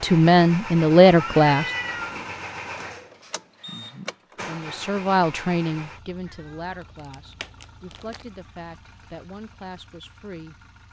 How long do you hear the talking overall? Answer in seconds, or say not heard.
8 s.